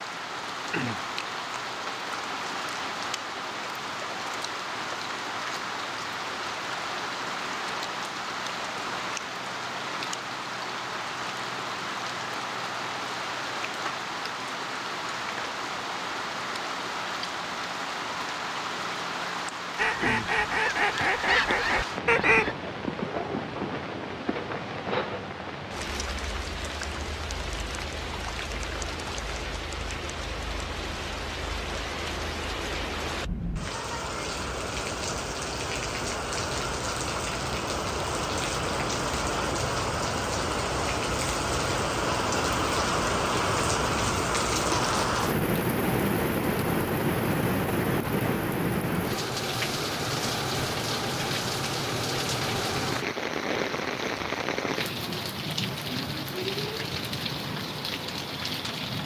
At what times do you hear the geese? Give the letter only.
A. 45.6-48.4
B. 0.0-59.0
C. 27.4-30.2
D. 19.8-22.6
D.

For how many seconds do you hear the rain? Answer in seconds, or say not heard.
59 s.